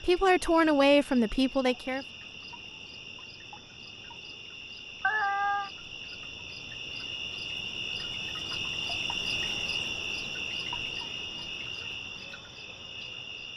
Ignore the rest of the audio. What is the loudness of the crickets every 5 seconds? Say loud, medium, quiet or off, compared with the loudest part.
medium, loud, loud.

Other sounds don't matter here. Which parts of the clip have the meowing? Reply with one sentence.
The meowing can be heard from 5.0 to 5.7 s.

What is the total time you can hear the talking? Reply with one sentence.
You can hear the talking for 2 seconds altogether.